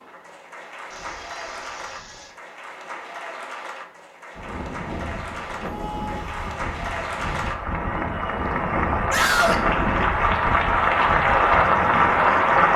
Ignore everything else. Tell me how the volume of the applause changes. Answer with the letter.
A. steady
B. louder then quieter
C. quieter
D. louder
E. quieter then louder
D.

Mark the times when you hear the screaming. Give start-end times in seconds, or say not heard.
0.9-2.4, 5.6-6.7, 9.1-9.6.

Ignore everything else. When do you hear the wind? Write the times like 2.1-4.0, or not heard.
4.3-12.7.